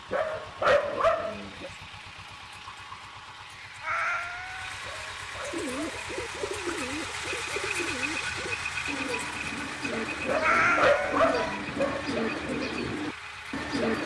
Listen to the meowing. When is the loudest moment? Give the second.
11 s.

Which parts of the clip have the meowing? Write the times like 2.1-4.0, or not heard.
3.8-4.8, 10.3-11.3.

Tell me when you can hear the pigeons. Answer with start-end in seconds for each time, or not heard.
5.5-14.0.